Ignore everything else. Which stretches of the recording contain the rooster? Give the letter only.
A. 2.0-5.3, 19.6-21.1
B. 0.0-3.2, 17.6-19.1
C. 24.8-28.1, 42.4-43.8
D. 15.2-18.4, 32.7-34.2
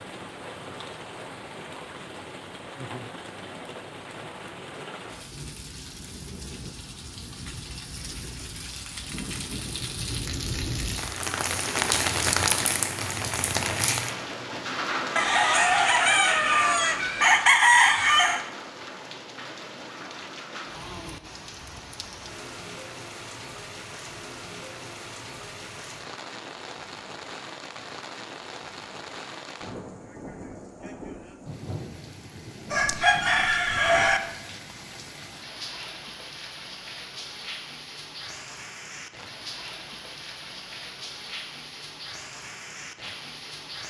D.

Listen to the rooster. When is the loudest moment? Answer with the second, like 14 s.
18 s.